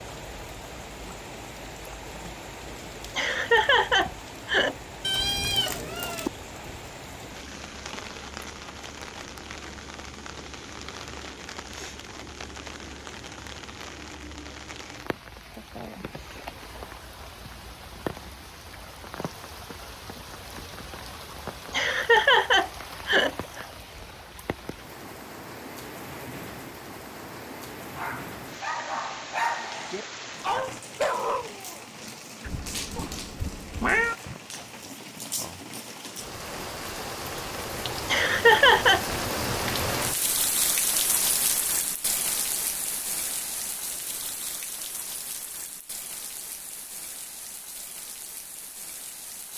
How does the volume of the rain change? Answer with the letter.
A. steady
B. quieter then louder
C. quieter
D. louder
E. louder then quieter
D.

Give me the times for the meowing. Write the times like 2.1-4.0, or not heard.
5.0-6.3, 32.5-34.1.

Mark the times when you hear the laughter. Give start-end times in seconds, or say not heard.
3.1-4.8, 21.7-23.6, 38.0-39.0.